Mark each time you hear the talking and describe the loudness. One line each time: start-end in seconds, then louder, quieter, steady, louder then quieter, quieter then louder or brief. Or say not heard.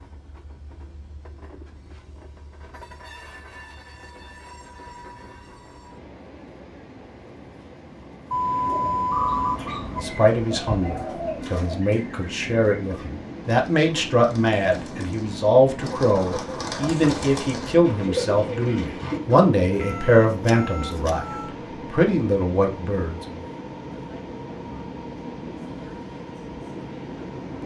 9.9-21.2 louder
21.9-23.4 brief.